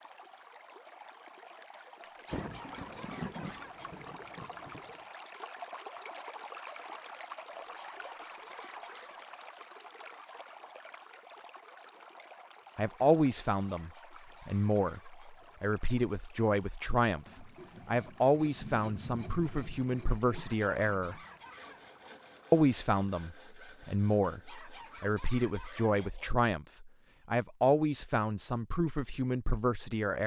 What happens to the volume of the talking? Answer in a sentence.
The volume of the talking stays about the same.